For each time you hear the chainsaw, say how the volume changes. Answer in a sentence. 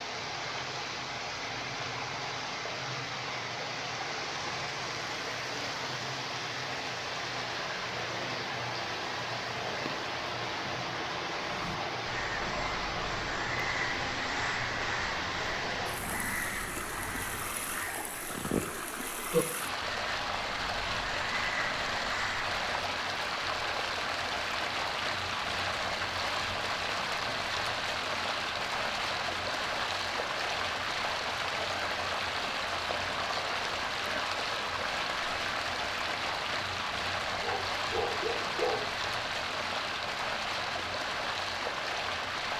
You can't hear the chainsaw here.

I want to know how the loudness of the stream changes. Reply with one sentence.
The volume of the stream stays about the same.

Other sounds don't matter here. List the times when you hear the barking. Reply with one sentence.
The barking can be heard from 37.4 to 38.9 s.